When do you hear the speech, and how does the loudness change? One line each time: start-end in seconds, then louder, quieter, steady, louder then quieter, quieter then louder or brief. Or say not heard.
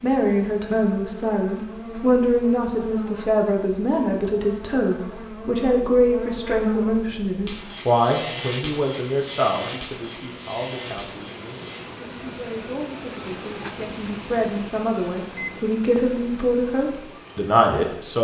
0.0-18.1 quieter then louder.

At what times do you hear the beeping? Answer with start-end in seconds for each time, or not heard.
15.2-15.8.